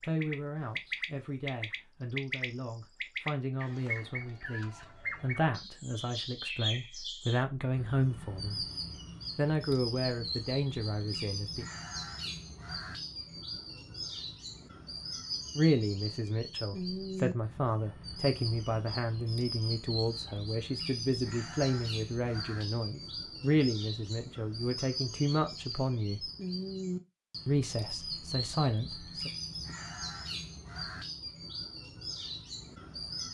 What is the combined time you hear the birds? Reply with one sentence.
You can hear the birds for 33 seconds altogether.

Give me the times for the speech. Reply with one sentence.
You can hear the speech from 0.0 to 8.7 s, from 9.3 to 11.7 s, from 15.6 to 26.3 s and from 27.4 to 29.3 s.